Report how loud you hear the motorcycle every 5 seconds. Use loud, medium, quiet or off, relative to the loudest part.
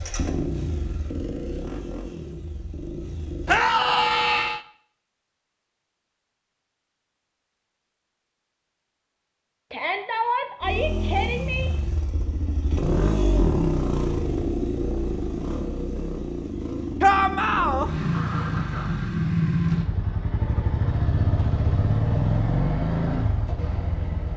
medium, off, loud, loud, loud.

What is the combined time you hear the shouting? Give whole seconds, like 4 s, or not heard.
4 s.